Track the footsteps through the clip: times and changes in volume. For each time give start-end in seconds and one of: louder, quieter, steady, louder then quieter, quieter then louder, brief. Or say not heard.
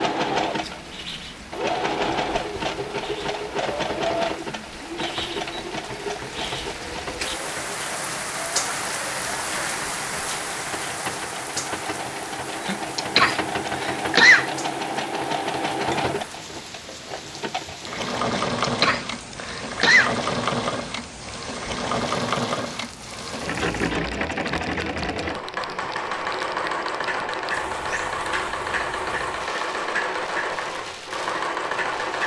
not heard.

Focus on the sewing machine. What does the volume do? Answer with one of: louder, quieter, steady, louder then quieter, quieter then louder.
quieter then louder.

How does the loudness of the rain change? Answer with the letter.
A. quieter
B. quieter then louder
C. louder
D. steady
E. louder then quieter
E.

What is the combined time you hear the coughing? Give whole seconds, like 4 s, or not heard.
4 s.